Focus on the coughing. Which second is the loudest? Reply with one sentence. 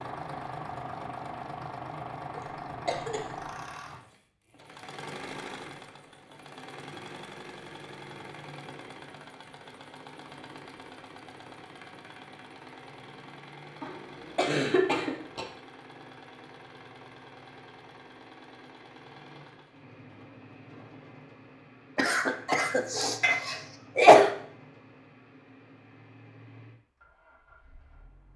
The volume of the coughing peaks at 24 seconds.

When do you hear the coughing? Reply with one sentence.
You can hear the coughing from 2.4 to 3.2 s, from 13.8 to 15.4 s and from 21.9 to 24.3 s.